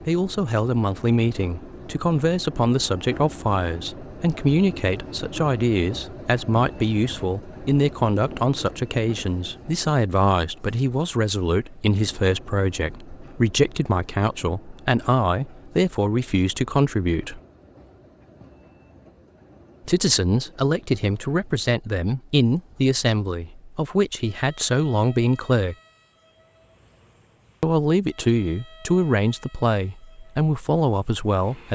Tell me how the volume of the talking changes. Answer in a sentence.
The loudness of the talking stays about the same.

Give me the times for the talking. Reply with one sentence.
The talking can be heard from 0.0 to 17.4 s, from 19.9 to 25.8 s and from 27.6 to 31.7 s.